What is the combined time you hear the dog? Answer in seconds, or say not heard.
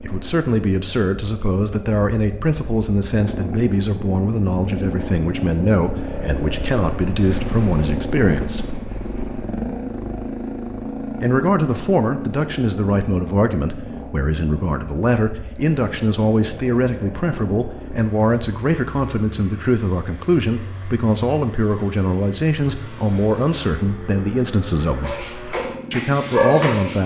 2 s.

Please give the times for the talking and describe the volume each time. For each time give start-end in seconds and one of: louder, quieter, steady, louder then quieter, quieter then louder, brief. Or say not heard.
0.0-8.7 steady
11.2-25.2 steady
25.9-27.0 brief.